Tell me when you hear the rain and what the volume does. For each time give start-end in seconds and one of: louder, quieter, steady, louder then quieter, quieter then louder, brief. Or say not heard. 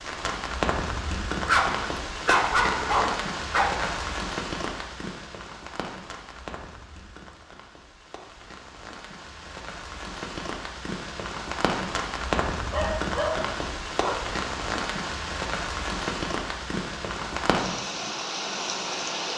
0.0-19.3 quieter then louder.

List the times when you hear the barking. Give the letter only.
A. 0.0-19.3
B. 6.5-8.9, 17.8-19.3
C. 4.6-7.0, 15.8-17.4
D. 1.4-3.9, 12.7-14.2
D.